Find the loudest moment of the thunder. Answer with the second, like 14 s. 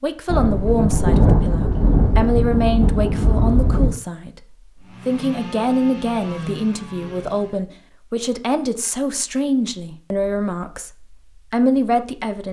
1 s.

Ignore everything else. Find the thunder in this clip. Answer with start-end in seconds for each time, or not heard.
0.2-3.9.